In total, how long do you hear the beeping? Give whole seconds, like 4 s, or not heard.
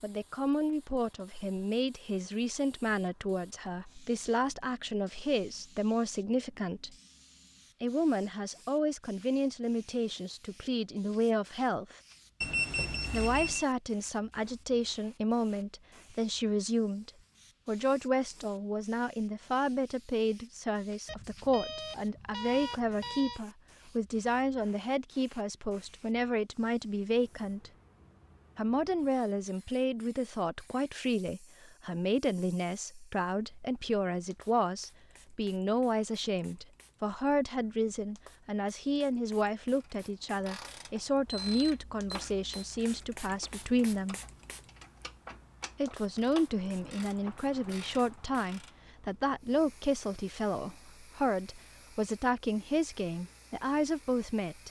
5 s.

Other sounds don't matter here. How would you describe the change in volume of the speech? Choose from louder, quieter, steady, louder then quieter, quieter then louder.
steady.